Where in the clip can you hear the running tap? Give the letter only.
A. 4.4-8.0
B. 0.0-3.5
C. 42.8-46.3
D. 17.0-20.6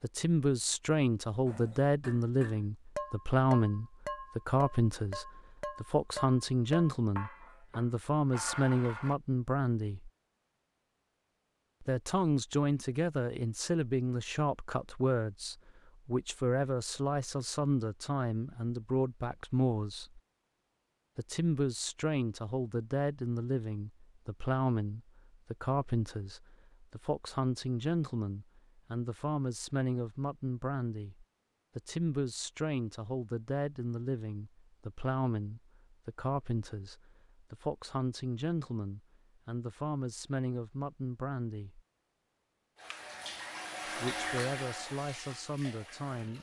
C.